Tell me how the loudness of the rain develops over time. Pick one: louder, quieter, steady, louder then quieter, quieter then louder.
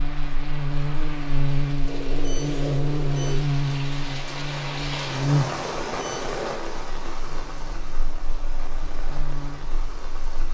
louder then quieter.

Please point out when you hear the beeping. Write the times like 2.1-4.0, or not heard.
1.9-3.4, 5.6-6.8.